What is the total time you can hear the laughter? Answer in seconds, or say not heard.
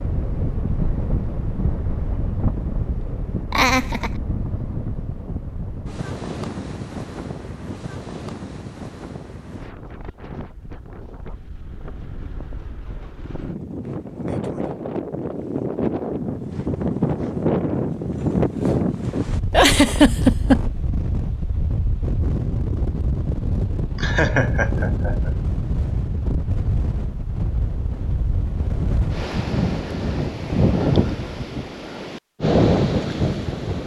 3 s.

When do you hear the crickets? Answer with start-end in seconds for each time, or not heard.
not heard.